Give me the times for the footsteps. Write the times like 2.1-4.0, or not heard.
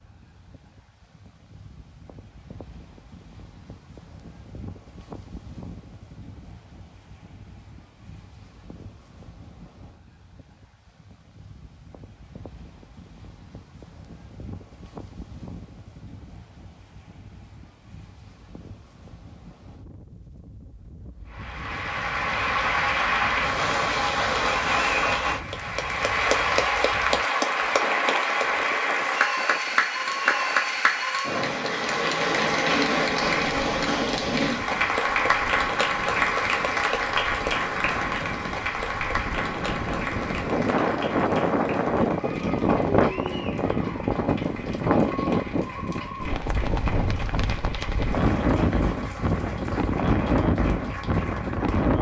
not heard.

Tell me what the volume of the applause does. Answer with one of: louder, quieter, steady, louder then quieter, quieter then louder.
quieter.